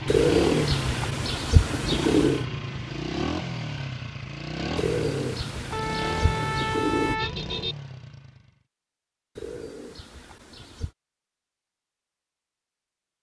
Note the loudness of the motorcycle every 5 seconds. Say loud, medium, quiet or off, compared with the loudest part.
loud, medium, off.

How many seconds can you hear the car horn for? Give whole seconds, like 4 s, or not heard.
2 s.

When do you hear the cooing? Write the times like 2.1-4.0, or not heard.
0.1-2.5, 4.8-7.2, 9.3-10.9.